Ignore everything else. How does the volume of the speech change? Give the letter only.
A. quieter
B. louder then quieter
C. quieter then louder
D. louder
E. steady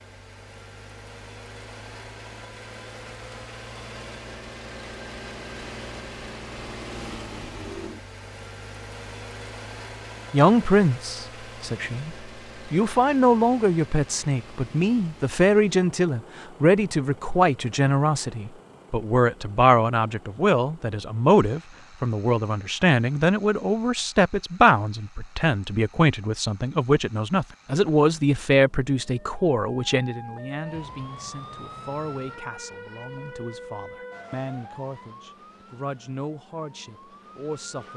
A.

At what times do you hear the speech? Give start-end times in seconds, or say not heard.
10.3-37.9.